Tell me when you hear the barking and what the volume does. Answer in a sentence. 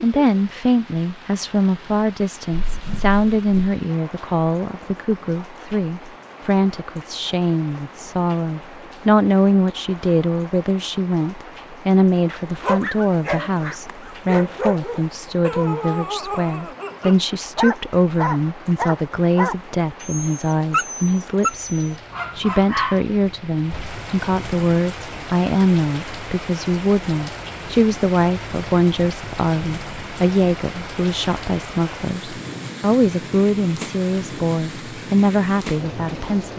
The barking can be heard from 12.3 to 23.1 s, at a steady volume.